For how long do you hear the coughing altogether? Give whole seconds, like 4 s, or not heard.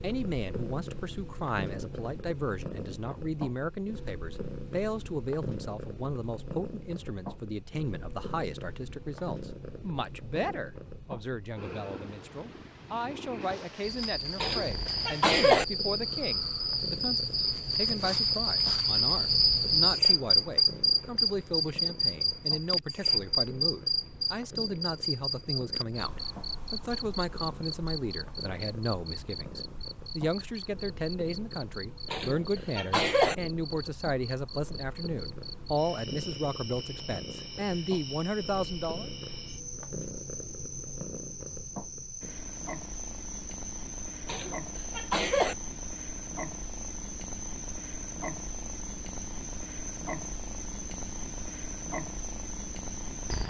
4 s.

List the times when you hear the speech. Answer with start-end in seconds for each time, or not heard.
0.0-39.1.